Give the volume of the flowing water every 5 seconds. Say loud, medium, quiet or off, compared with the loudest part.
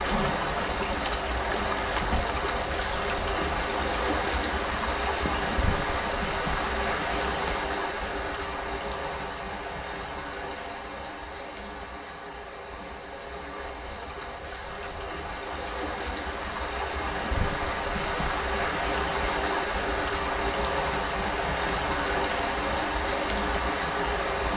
loud, loud, medium, loud, loud.